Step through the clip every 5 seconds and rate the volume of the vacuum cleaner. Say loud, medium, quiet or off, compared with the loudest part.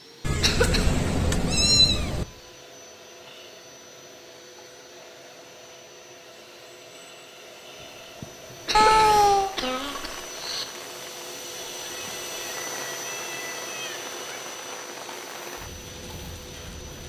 medium, medium, loud, medium.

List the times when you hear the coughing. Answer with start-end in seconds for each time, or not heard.
0.4-0.9, 8.7-10.7.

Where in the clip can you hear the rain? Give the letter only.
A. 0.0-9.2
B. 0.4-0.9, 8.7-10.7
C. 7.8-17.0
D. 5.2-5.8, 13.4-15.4
C.